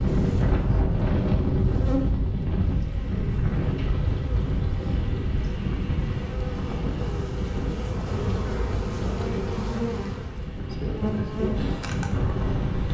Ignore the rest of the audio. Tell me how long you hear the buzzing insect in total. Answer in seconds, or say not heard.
13 s.